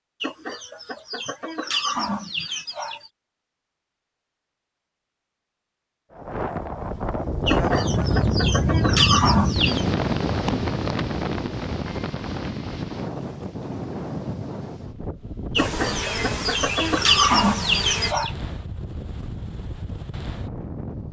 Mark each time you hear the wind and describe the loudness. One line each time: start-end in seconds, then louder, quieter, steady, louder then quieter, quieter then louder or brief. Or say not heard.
6.1-21.0 quieter.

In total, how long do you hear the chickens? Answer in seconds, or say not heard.
8 s.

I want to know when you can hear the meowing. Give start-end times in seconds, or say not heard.
not heard.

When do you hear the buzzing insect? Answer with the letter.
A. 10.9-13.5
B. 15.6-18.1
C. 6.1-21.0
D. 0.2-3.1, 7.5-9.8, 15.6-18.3
B.